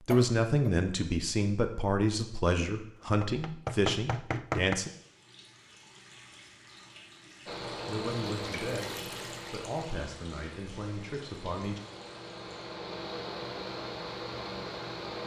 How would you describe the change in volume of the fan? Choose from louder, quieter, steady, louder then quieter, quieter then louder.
quieter then louder.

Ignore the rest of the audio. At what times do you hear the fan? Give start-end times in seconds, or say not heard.
7.5-15.2.